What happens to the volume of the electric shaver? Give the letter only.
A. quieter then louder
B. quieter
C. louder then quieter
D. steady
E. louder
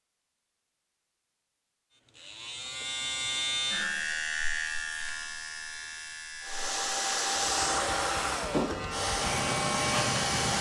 A.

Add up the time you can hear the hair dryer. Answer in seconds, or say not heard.
4 s.